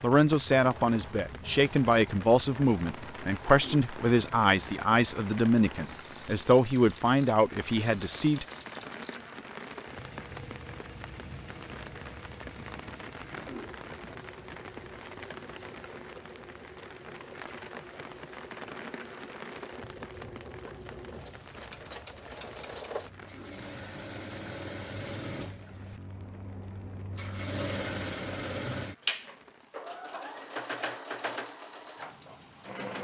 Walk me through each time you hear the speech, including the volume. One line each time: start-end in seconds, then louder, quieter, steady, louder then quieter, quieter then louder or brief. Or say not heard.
0.0-8.4 steady.